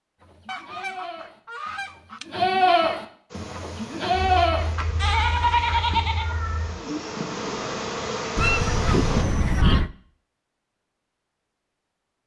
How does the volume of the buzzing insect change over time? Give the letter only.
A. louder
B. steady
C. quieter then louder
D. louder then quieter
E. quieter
A.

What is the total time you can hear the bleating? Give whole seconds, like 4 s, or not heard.
6 s.